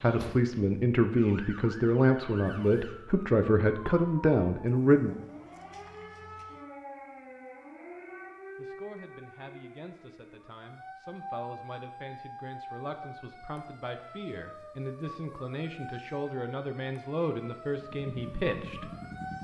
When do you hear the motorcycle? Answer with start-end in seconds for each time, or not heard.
17.7-19.3.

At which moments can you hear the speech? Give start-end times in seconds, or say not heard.
0.0-5.2, 8.6-18.9.